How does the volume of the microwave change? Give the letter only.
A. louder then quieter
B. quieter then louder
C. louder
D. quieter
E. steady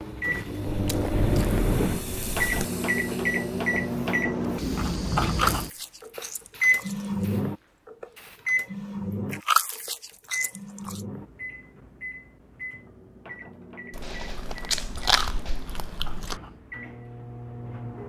D.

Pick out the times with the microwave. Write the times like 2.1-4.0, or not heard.
0.0-18.0.